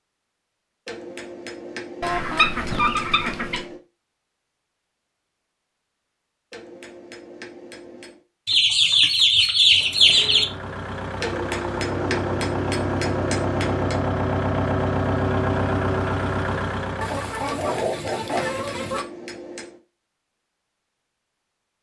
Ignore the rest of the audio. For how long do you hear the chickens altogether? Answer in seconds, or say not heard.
6 s.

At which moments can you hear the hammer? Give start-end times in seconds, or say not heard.
0.8-3.8, 6.5-8.2, 11.2-14.1, 17.4-19.8.